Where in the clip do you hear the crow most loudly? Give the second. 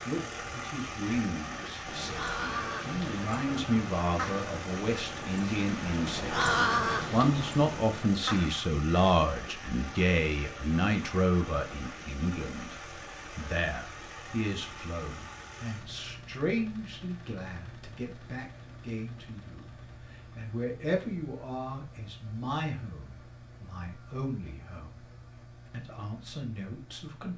7 s.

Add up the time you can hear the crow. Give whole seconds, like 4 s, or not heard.
7 s.